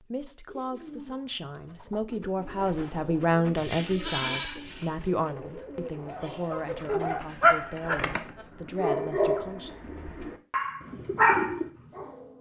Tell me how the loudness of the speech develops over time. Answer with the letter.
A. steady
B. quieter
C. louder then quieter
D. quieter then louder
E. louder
C.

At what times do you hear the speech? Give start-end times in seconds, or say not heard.
0.0-9.7.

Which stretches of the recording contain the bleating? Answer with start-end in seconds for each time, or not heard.
3.5-5.0.